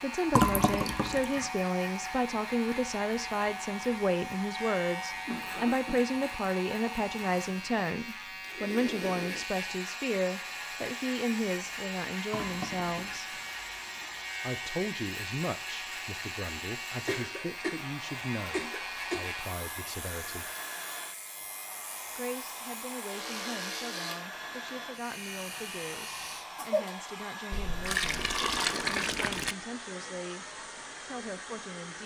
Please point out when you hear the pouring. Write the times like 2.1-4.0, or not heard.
0.3-1.5, 12.3-14.2, 27.5-29.6.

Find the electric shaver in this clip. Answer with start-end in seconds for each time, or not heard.
0.0-26.4.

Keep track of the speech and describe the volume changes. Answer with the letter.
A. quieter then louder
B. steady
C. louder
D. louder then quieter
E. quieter
E.